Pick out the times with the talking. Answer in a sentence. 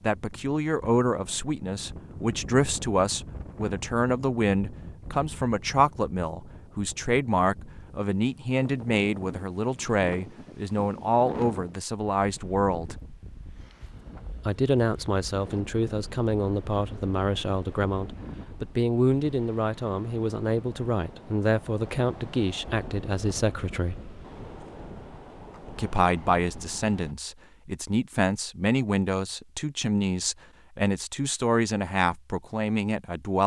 You can hear the talking from 0.0 to 12.9 s, from 14.4 to 24.0 s and from 25.8 to 33.4 s.